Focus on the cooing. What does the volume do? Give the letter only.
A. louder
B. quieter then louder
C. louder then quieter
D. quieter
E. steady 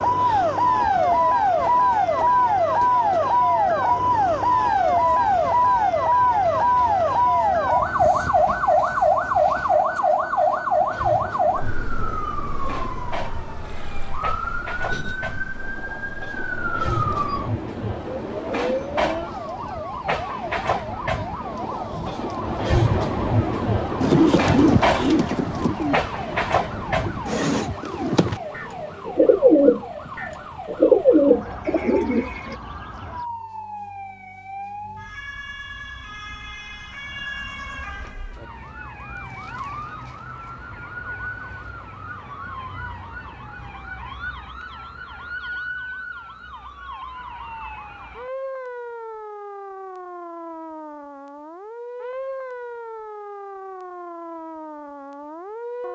B.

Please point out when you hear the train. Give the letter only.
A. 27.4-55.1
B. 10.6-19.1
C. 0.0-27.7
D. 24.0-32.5
C.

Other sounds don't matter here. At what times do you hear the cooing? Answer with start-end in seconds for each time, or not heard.
24.0-32.5.